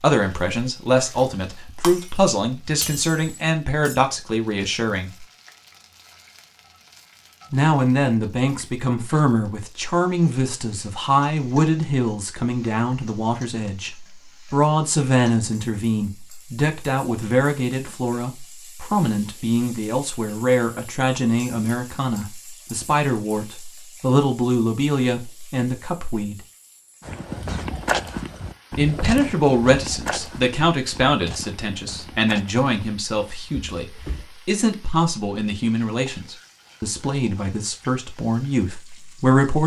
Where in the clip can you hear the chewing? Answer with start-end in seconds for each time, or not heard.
not heard.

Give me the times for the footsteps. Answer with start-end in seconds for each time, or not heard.
27.1-34.2.